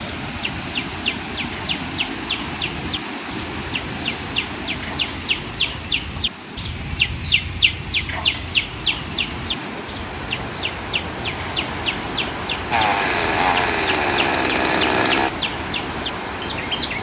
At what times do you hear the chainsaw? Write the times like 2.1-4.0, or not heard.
12.7-15.3.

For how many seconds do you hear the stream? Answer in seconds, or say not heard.
17 s.